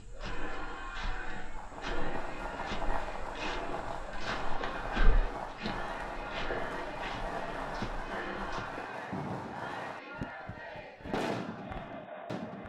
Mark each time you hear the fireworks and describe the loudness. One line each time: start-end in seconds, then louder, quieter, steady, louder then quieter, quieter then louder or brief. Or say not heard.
1.4-12.6 steady.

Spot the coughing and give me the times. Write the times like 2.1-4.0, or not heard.
not heard.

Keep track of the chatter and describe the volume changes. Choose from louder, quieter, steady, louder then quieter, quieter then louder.
steady.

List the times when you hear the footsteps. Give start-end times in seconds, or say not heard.
0.0-8.8.